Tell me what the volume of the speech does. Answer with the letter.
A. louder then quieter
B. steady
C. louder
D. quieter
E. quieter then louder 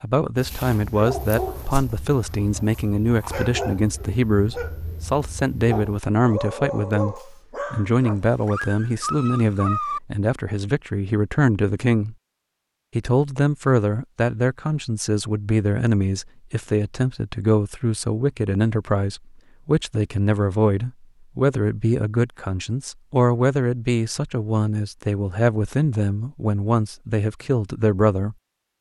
B.